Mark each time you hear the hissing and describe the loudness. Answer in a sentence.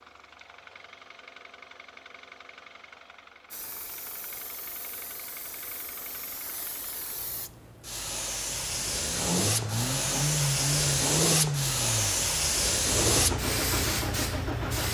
You can hear the hissing from 3.5 to 14.8 s, getting louder.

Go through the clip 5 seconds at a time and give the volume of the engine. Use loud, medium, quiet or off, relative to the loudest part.
quiet, medium, loud.